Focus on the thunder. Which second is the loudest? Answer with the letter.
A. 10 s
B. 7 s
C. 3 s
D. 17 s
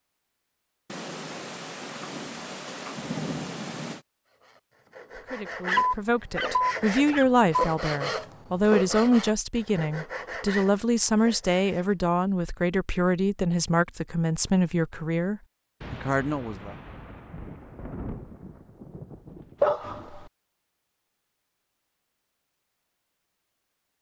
C.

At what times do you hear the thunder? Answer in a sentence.
The thunder can be heard from 0.8 to 4.0 s and from 15.8 to 20.1 s.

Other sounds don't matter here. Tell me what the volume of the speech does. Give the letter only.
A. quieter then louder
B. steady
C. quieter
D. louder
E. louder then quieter
B.